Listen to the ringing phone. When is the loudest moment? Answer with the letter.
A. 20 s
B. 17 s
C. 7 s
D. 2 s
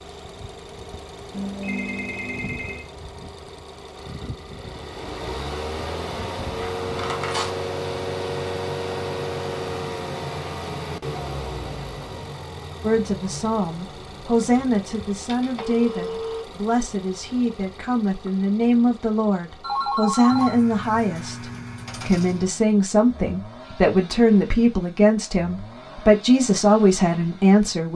A.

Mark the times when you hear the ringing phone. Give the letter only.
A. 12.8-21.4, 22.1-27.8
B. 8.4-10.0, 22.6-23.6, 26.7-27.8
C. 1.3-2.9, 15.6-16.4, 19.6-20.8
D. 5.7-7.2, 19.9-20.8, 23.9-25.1
C.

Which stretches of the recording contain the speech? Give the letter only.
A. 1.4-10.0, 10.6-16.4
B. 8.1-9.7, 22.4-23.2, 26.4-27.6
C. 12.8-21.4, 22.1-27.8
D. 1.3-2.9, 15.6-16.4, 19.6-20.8
C.